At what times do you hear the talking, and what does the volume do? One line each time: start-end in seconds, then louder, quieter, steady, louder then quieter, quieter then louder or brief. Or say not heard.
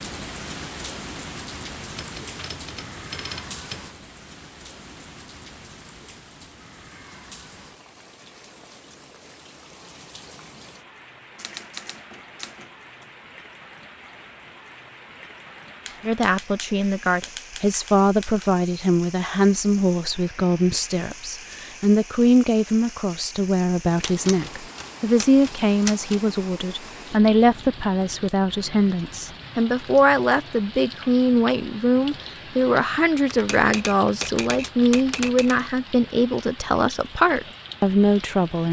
16.0-38.6 steady.